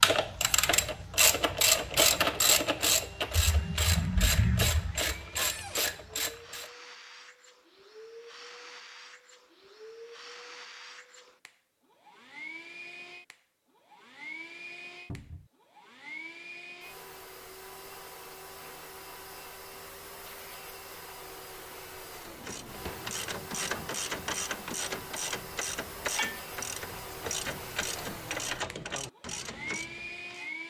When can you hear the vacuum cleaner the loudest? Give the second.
30 s.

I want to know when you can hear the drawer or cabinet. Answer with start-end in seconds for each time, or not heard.
5.3-5.8, 15.1-15.5, 22.3-23.0.